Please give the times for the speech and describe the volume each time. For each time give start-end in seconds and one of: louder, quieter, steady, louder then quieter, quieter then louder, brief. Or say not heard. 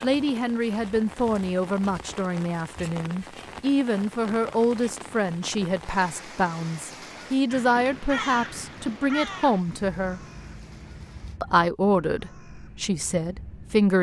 0.0-10.2 steady
11.4-13.9 brief.